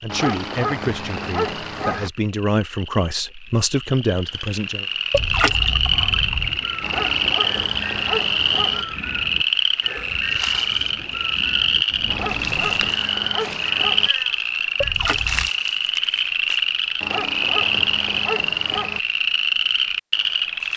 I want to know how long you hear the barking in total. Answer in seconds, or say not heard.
8 s.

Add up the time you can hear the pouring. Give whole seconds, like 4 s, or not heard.
2 s.